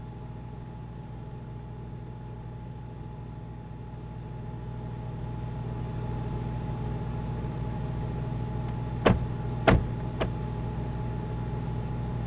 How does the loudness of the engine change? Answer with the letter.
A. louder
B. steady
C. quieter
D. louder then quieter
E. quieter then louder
A.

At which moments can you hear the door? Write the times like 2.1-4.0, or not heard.
9.1-10.3.